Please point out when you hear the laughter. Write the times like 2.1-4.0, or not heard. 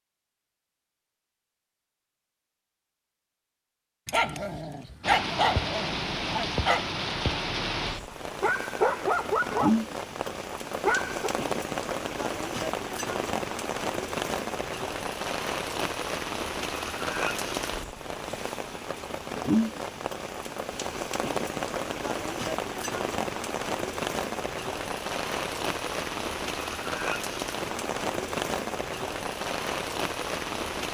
not heard.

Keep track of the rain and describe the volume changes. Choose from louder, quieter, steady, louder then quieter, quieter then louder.
steady.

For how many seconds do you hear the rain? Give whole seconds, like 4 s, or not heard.
26 s.